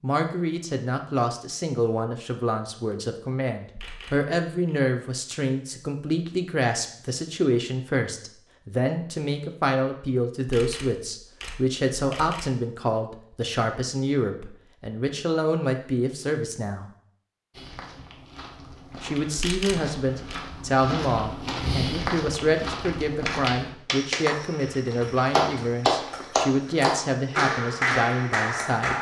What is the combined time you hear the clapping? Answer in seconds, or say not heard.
6 s.